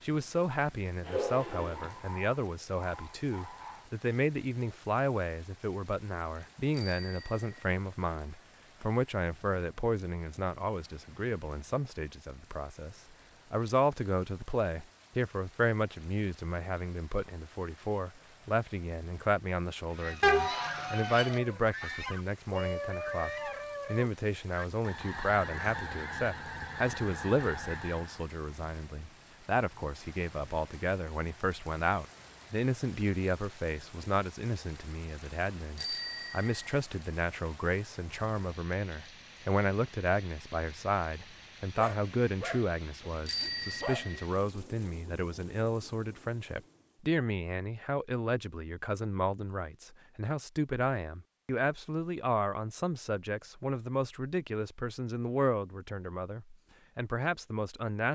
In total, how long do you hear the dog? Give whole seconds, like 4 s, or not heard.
7 s.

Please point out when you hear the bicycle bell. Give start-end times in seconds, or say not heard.
6.7-7.5, 35.8-36.6, 43.2-44.2.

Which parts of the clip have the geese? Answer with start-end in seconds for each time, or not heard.
19.9-28.3.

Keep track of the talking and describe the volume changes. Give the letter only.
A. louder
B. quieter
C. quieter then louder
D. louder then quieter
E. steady
E.